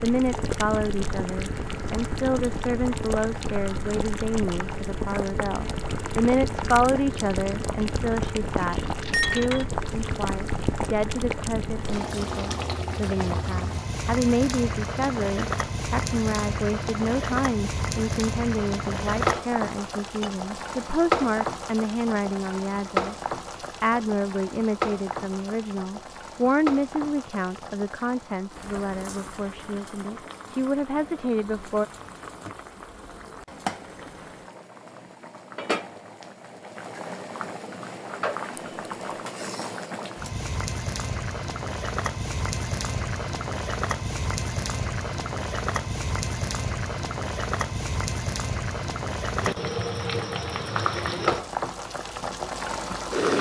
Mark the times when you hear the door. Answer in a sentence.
You can't hear the door here.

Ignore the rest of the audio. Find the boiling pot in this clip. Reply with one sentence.
The boiling pot can be heard from 0.0 to 53.3 s.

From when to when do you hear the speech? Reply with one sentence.
You can hear the speech from 0.0 to 23.1 s and from 23.8 to 31.9 s.